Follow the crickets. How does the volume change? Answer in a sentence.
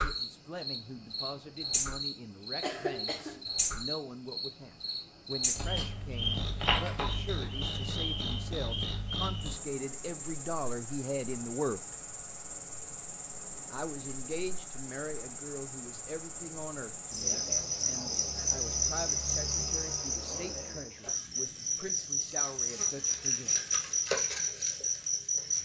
The loudness of the crickets goes down, then up.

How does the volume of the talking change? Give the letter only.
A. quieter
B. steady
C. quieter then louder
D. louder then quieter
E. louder
D.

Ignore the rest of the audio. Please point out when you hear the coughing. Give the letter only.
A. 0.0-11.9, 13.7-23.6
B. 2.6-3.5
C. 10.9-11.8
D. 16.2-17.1
B.